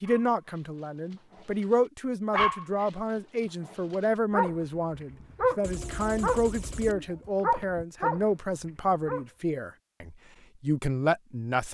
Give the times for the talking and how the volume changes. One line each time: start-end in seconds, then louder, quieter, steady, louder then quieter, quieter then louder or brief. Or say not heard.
0.0-11.7 steady.